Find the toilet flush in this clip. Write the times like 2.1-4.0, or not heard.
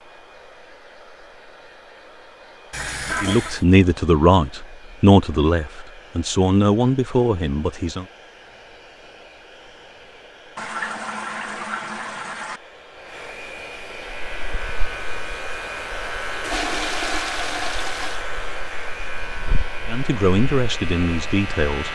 2.7-3.6, 10.6-12.6, 16.4-18.2.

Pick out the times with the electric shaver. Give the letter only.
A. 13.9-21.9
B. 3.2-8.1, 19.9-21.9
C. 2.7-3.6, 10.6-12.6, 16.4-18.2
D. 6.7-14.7
A.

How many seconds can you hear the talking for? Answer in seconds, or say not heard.
7 s.